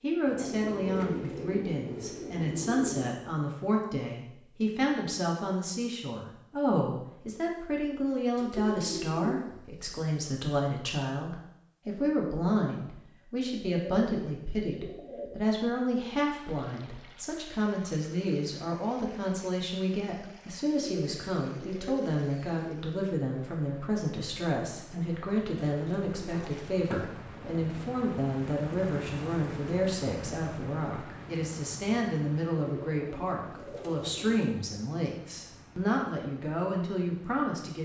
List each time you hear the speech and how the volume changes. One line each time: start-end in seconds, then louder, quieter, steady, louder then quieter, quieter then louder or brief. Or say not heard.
0.0-37.7 steady.